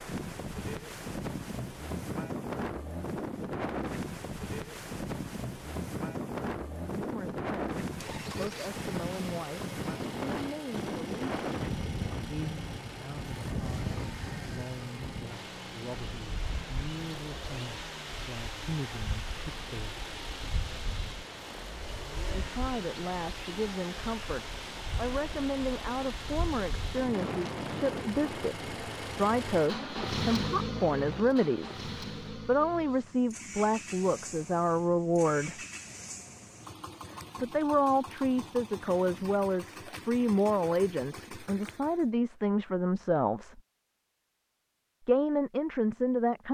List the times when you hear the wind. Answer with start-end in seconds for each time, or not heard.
0.0-31.4.